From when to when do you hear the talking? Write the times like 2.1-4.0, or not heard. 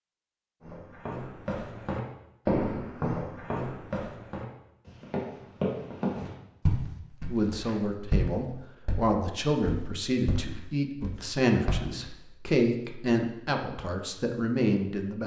7.3-15.2.